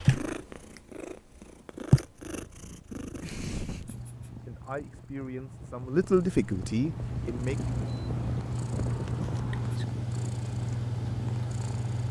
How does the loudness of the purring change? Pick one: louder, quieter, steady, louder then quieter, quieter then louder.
quieter then louder.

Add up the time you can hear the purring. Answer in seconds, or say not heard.
12 s.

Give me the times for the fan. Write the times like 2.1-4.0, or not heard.
3.2-12.0.